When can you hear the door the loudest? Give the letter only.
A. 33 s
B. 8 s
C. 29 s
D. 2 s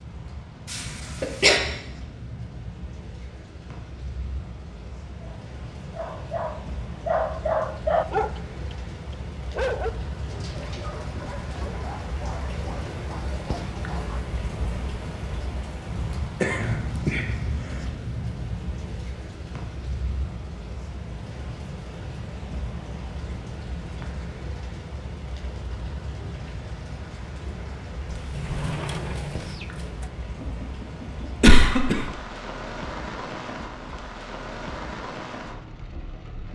C.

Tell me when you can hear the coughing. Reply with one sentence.
You can hear the coughing from 0.7 to 1.6 s, from 15.9 to 17.9 s and from 30.4 to 32.0 s.